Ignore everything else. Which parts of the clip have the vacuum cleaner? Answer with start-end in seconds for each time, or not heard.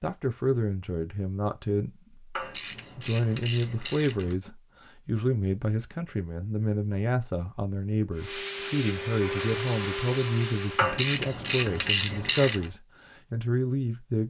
8.2-10.9.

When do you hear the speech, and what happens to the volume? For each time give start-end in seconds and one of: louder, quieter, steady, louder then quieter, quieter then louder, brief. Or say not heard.
0.0-14.2 steady.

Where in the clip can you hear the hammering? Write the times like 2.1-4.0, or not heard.
not heard.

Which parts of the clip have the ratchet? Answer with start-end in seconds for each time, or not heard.
2.4-4.3, 10.8-12.7.